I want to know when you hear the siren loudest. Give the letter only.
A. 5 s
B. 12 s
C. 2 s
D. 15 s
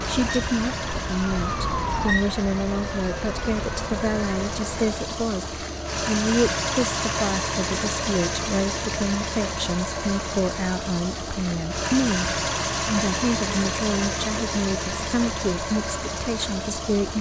C.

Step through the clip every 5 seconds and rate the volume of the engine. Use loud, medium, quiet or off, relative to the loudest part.
medium, loud, loud, loud.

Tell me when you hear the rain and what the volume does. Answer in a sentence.
You can't hear the rain here.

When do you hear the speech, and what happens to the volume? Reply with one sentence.
You can hear the speech from 0.0 to 17.1 s, at a steady volume.